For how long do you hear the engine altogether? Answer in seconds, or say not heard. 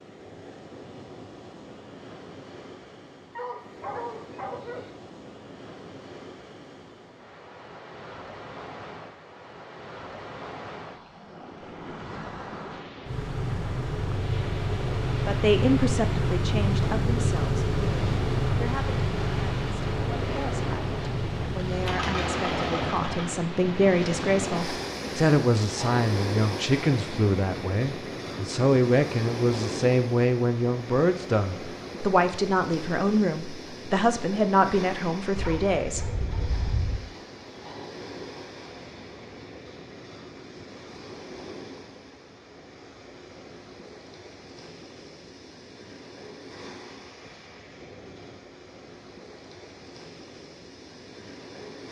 10 s.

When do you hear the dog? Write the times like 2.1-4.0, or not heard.
3.4-4.9, 35.4-37.0.